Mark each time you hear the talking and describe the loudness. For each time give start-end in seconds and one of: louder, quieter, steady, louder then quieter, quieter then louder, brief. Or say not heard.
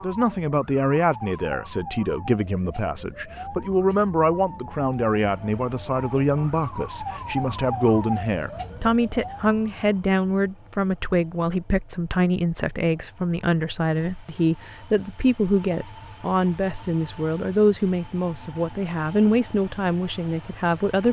0.0-21.0 steady.